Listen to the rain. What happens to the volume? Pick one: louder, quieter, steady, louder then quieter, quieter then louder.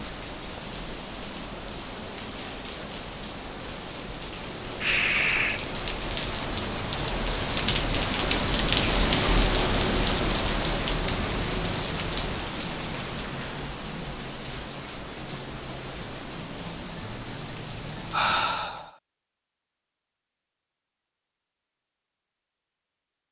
louder then quieter.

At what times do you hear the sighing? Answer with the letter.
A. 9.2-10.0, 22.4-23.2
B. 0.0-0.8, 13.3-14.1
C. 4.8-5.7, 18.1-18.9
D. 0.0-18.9
C.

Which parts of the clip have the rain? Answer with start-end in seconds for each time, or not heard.
0.0-18.9.